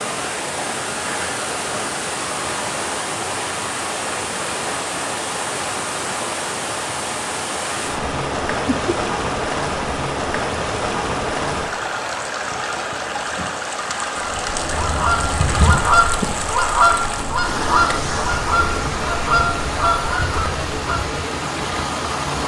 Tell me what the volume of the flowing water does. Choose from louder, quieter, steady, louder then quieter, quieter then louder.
steady.